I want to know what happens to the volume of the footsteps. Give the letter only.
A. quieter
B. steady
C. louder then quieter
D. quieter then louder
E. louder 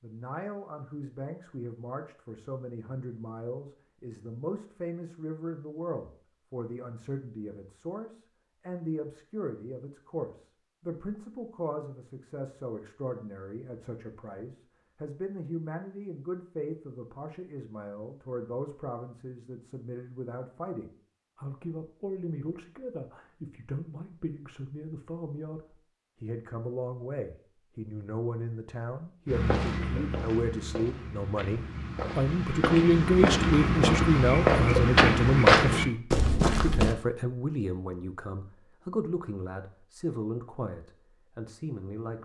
E.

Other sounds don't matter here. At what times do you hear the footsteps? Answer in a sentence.
The footsteps can be heard from 29.2 to 37.0 s.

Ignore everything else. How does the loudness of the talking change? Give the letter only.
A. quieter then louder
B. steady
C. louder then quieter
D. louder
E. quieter
D.